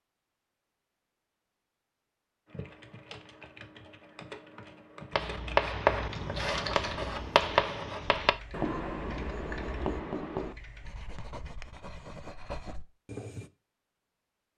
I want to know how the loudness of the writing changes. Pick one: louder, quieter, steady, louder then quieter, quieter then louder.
quieter.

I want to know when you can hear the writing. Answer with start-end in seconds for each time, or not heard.
5.1-13.5.